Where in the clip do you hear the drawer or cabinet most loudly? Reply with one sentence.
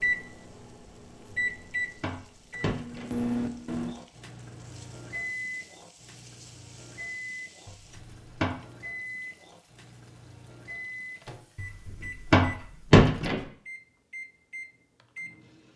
The volume of the drawer or cabinet peaks at 13 seconds.